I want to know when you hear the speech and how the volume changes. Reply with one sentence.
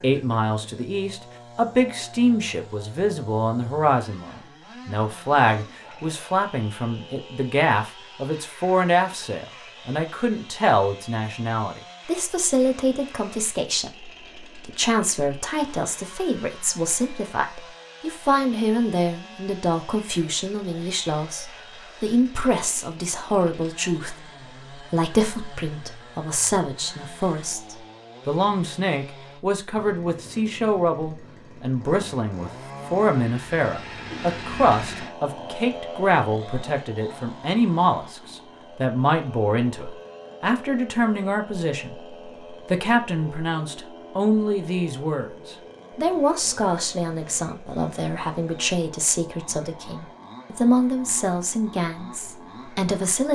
You can hear the speech from 0.0 to 53.3 s, at a steady volume.